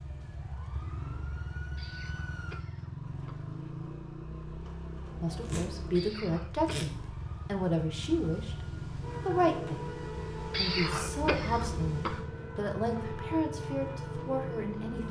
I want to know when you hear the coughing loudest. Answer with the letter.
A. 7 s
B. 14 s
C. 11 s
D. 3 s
C.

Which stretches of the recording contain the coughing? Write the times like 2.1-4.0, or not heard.
1.8-3.5, 5.9-6.7, 10.5-12.2.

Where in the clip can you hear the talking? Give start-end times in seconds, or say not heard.
5.2-9.9, 10.6-15.0.